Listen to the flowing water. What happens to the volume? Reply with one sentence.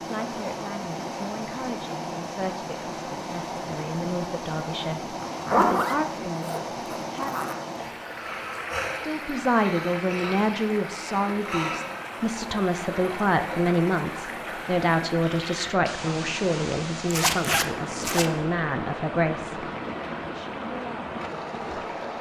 The volume of the flowing water stays about the same.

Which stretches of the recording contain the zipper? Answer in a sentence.
You can hear the zipper from 5.2 to 7.5 s and from 17.1 to 18.2 s.